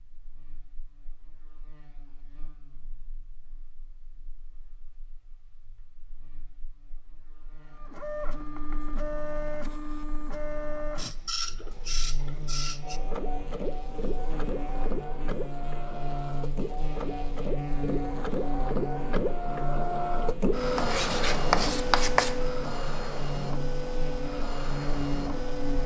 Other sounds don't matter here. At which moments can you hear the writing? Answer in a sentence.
The writing can be heard from 20.8 to 22.4 s.